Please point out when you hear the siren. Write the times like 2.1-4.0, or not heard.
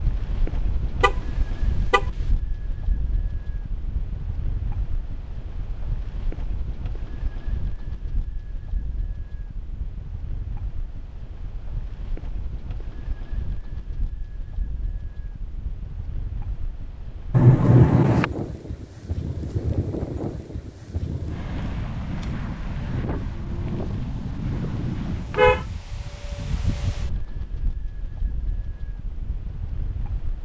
not heard.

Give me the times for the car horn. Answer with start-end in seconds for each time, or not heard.
1.0-2.0, 17.3-18.2, 24.4-25.6.